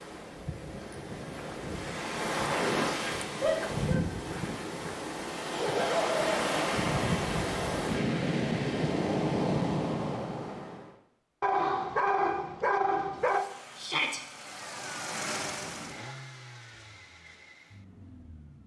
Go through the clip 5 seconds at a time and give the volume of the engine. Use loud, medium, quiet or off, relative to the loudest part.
off, off, loud, loud.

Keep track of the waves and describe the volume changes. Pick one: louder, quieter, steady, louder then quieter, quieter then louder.
louder.